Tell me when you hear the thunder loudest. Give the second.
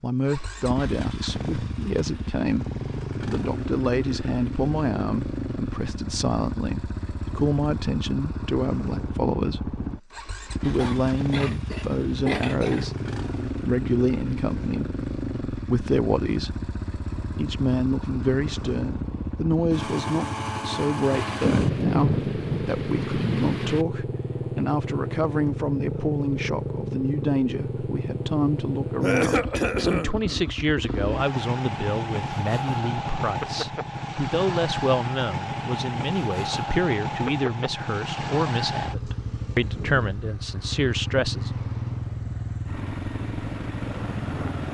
22 s.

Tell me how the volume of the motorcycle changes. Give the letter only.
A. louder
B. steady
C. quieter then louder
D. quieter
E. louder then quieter
B.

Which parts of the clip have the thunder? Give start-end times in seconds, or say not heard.
21.1-23.9.